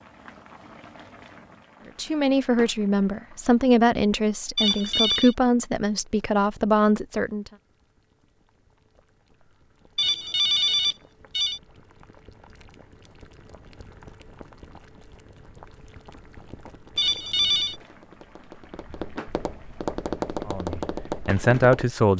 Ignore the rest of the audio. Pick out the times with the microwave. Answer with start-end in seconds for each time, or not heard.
not heard.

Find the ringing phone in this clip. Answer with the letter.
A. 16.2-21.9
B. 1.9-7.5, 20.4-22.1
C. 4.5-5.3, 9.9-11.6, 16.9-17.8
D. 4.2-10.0
C.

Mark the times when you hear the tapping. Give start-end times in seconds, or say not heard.
16.2-21.9.